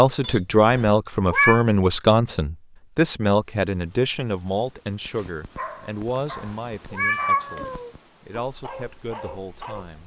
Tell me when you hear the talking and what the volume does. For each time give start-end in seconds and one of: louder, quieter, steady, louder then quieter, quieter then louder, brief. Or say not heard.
0.0-10.0 quieter.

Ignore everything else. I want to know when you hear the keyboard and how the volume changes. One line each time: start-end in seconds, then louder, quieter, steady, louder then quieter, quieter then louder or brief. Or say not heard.
not heard.